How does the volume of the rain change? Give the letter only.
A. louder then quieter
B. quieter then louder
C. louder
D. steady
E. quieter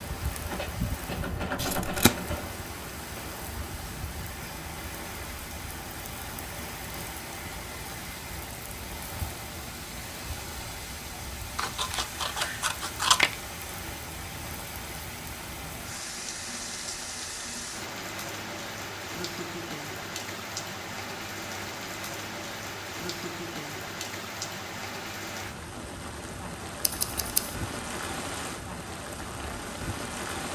D.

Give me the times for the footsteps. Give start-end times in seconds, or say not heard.
not heard.